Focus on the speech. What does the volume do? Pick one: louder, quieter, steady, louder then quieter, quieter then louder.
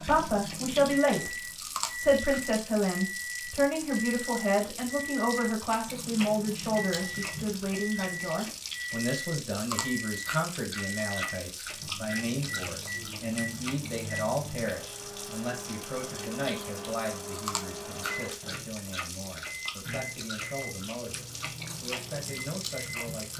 quieter.